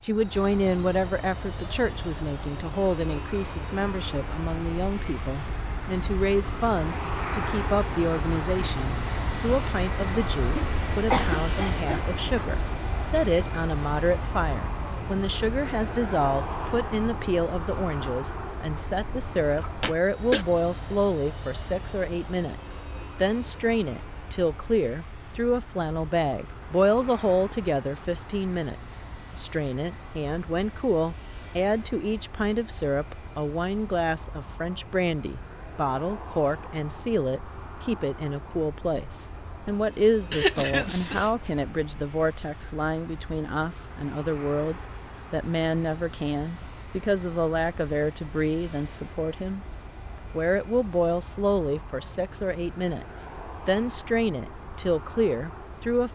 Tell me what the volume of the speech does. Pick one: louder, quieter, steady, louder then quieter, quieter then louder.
steady.